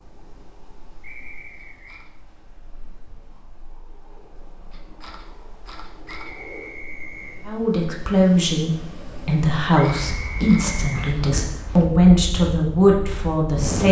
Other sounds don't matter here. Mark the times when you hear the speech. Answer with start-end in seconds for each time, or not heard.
7.5-13.8.